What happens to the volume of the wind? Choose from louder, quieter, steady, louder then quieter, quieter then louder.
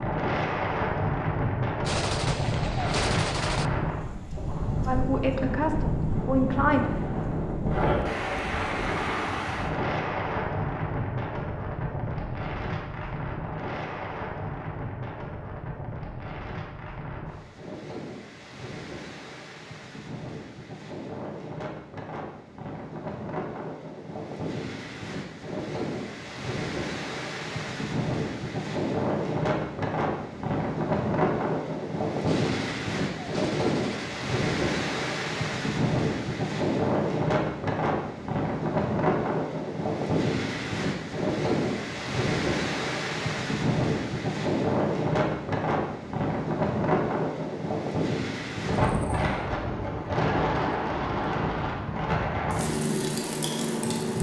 quieter then louder.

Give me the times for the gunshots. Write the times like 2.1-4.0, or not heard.
1.9-3.7, 32.2-34.1.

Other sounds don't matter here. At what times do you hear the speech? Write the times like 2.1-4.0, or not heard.
4.8-6.8.